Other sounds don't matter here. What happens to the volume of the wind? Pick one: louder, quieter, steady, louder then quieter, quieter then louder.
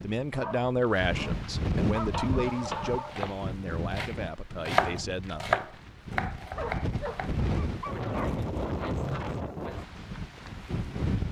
quieter then louder.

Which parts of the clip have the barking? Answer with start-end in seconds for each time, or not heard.
0.3-3.2, 6.5-8.4.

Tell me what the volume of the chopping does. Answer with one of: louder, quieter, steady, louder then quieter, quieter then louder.
louder then quieter.